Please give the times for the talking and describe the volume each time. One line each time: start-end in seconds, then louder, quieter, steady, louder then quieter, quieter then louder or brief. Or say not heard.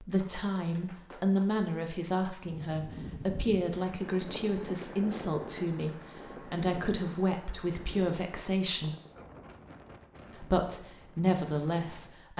0.0-8.9 steady
10.3-12.3 brief.